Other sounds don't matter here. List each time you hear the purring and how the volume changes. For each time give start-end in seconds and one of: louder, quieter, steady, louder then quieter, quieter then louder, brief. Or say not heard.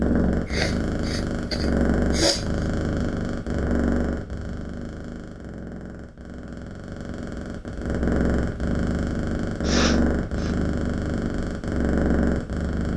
0.0-12.9 quieter then louder.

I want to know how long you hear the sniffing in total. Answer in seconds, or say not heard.
3 s.